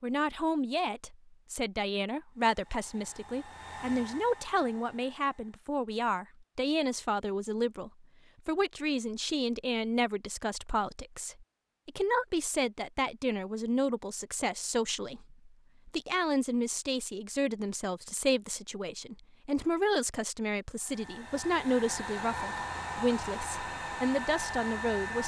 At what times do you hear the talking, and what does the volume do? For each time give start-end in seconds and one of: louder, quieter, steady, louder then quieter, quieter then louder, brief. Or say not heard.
0.0-25.2 steady.